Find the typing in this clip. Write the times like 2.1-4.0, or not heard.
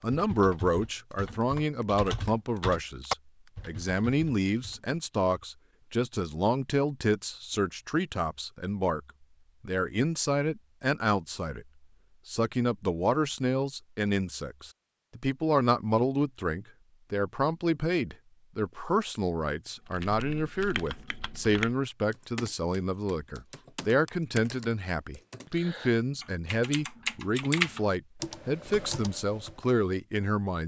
0.0-5.0, 19.9-29.6.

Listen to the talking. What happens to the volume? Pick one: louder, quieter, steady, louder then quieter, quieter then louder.
steady.